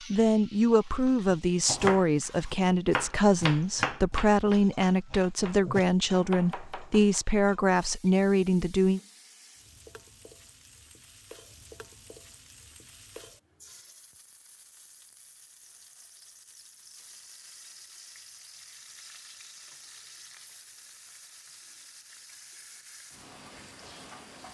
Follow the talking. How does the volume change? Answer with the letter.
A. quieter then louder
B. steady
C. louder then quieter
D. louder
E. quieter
B.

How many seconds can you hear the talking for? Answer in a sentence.
The talking can be heard for 9 seconds in total.